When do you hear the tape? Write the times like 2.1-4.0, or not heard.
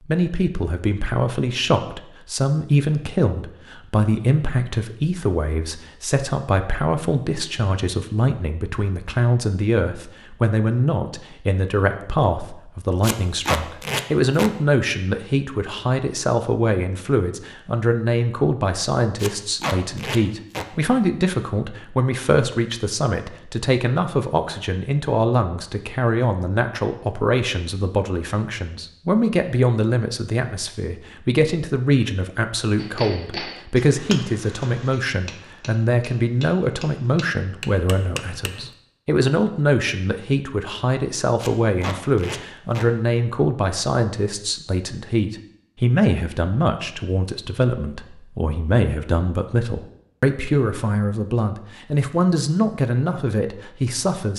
13.0-14.5, 19.2-20.6, 41.4-42.9.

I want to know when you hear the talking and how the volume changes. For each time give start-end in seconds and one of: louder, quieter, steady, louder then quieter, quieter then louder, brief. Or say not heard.
0.1-54.3 steady.